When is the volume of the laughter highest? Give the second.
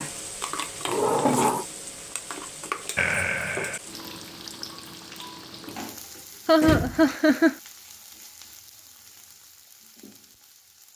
7 s.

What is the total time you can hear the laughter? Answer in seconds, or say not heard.
2 s.